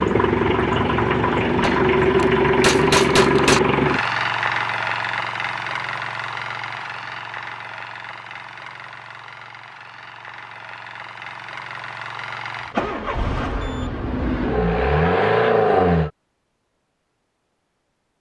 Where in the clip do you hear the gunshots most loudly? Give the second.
3 s.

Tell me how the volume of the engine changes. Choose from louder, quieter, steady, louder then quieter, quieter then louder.
quieter then louder.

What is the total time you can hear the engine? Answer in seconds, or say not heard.
16 s.